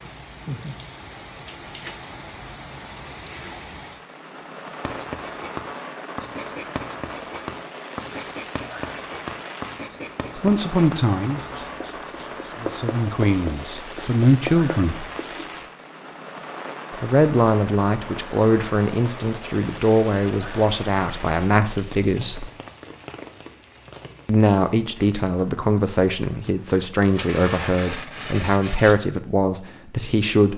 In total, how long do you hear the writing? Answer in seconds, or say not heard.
11 s.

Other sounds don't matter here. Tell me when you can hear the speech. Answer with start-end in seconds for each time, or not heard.
10.3-11.4, 12.6-15.1, 17.0-22.5, 24.2-30.5.